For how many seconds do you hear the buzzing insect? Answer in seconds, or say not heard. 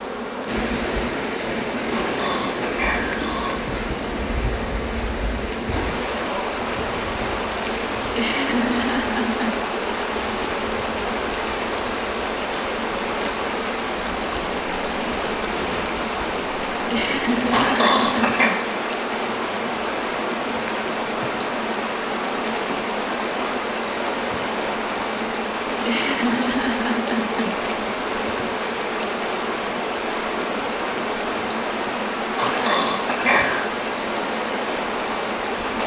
36 s.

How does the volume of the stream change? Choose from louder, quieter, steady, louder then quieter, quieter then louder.
steady.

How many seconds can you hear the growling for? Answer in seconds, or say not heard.
4 s.